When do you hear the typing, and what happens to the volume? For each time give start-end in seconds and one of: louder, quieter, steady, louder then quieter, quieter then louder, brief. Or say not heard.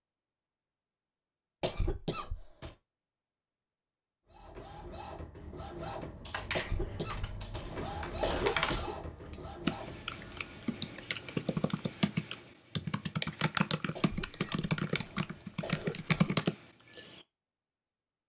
6.2-17.2 louder.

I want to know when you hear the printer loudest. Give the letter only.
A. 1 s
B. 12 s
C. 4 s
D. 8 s
D.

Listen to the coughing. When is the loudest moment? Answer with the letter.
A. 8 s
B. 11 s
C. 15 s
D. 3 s
A.